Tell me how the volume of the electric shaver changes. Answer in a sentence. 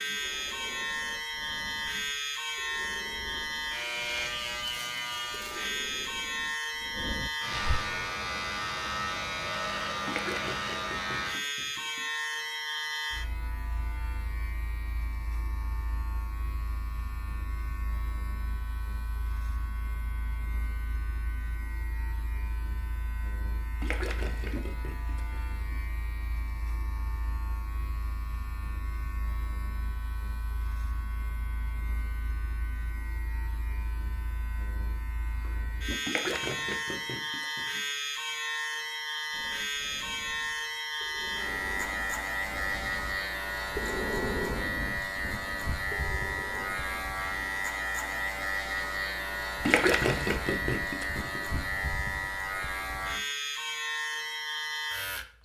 The volume of the electric shaver goes down, then up.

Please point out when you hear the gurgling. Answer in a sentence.
The gurgling can be heard from 10.1 to 12.0 s, from 23.8 to 25.8 s, from 36.0 to 37.7 s and from 49.6 to 51.6 s.